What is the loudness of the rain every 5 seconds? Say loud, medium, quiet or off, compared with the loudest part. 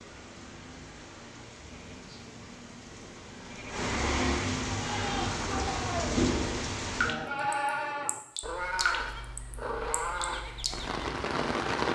medium, loud, loud.